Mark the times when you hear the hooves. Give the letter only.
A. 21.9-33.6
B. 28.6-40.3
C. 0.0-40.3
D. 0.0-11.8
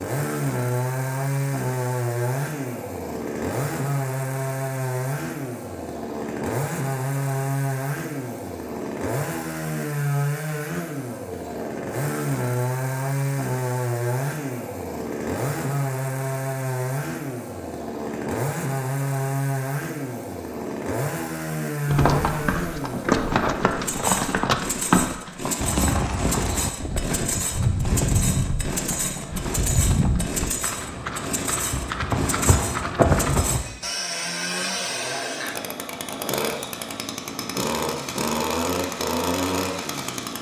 A.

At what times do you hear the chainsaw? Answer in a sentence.
You can hear the chainsaw from 0.0 to 40.3 s.